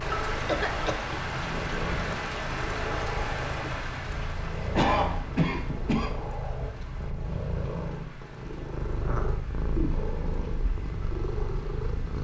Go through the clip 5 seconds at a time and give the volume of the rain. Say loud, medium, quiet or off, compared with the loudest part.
loud, quiet, quiet.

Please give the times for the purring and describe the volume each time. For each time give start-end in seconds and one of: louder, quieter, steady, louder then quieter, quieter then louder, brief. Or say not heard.
0.0-12.1 steady.